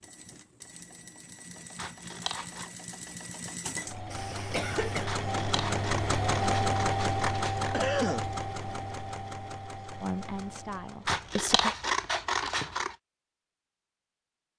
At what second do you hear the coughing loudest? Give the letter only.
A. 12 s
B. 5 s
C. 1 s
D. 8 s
D.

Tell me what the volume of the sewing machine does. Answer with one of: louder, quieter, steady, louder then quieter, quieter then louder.
louder then quieter.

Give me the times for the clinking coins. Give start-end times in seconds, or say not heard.
not heard.